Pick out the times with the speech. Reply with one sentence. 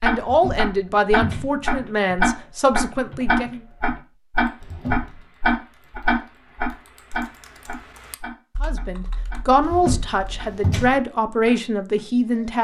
You can hear the speech from 0.0 to 3.6 s and from 8.6 to 12.5 s.